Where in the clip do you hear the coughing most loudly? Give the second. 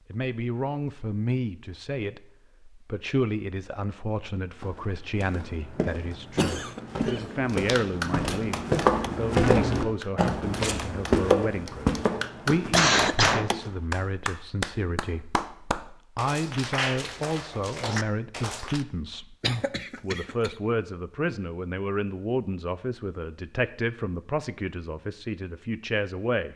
13 s.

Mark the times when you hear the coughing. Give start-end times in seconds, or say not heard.
6.3-7.2, 12.7-13.6, 19.4-20.6.